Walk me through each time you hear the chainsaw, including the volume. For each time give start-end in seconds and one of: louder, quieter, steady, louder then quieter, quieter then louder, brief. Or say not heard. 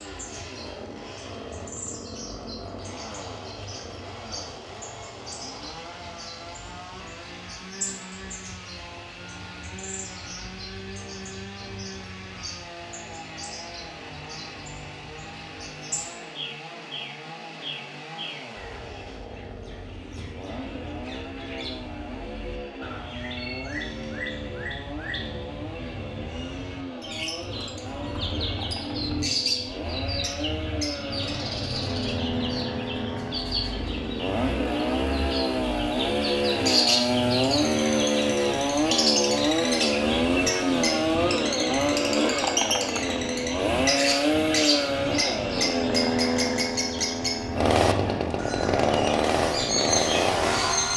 0.0-50.9 louder.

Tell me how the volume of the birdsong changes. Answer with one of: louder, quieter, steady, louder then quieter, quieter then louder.
louder.